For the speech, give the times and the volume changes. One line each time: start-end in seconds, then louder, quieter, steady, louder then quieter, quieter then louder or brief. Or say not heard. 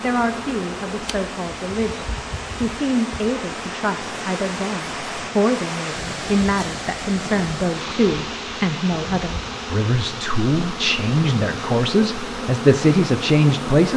0.0-13.9 louder.